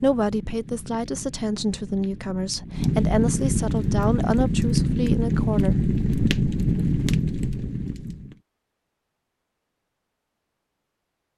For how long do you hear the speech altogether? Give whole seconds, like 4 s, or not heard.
6 s.